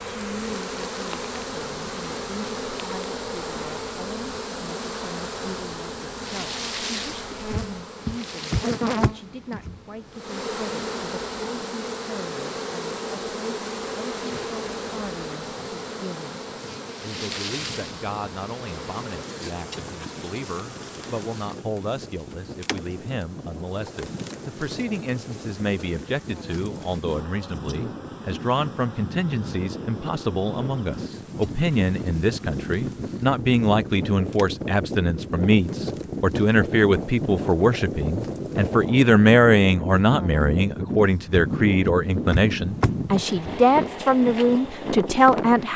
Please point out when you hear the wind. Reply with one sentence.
The wind can be heard from 0.0 to 45.7 s.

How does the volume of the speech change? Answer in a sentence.
The volume of the speech goes up.